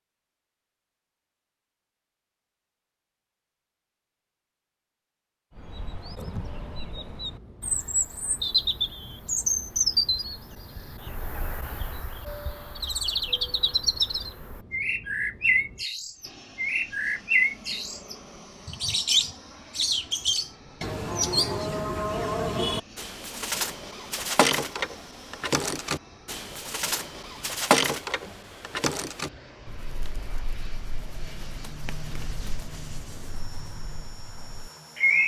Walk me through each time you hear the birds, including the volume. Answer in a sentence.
You can hear the birds from 5.5 to 35.2 s, getting quieter.